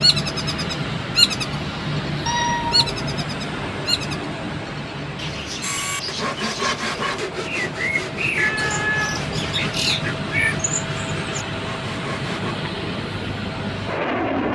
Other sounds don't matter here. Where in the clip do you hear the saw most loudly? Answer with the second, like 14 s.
7 s.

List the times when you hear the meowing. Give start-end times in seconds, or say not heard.
2.2-2.9, 8.3-9.2.